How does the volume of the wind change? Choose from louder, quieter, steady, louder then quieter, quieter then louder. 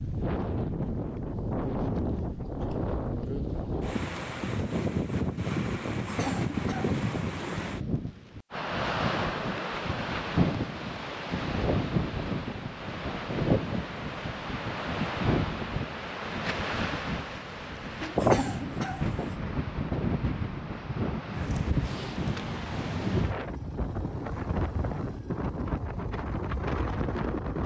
steady.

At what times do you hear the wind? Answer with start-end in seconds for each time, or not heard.
0.0-27.6.